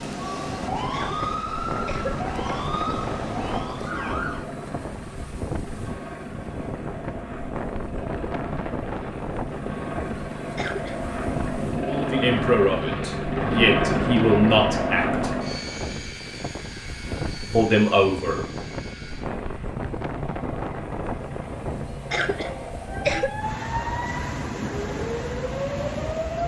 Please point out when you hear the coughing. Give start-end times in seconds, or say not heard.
0.9-2.1, 10.6-11.1, 22.1-23.3.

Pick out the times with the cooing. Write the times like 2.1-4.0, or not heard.
not heard.